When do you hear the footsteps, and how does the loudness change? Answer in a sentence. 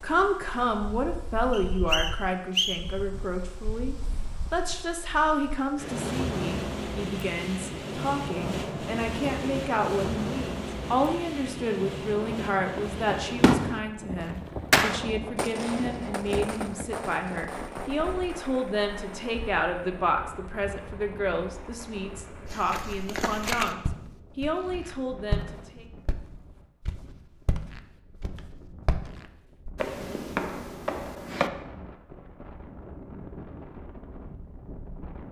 The footsteps can be heard from 22.4 to 31.5 s, getting quieter then louder.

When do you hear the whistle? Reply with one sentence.
You can hear the whistle from 1.5 to 3.0 s.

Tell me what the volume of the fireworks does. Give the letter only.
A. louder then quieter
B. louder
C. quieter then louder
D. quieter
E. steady
D.